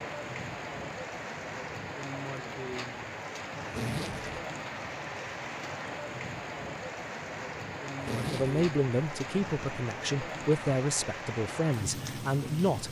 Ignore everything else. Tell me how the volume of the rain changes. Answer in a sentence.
The volume of the rain stays about the same.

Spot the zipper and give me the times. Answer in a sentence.
You can hear the zipper from 3.7 to 4.5 s and from 8.0 to 8.6 s.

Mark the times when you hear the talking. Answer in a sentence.
You can hear the talking from 8.3 to 12.8 s.